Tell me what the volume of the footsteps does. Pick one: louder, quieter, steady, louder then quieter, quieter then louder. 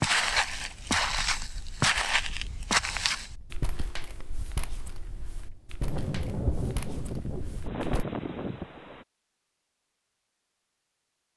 quieter.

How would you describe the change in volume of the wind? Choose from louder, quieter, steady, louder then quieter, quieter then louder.
louder.